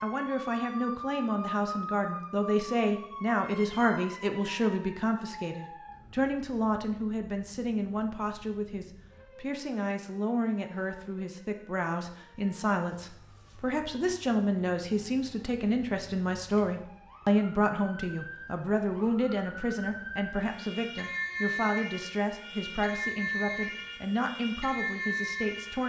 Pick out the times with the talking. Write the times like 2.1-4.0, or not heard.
0.0-25.8.